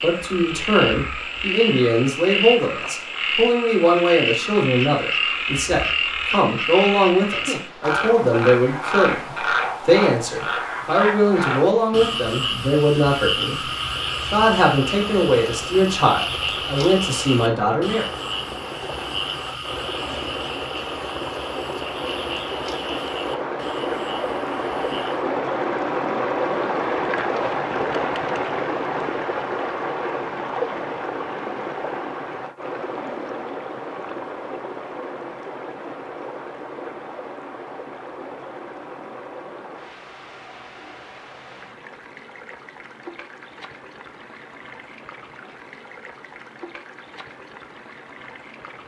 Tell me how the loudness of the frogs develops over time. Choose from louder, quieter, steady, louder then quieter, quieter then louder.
quieter.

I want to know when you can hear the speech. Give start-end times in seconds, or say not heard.
0.0-13.7, 14.3-18.1.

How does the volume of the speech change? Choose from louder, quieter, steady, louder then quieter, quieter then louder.
steady.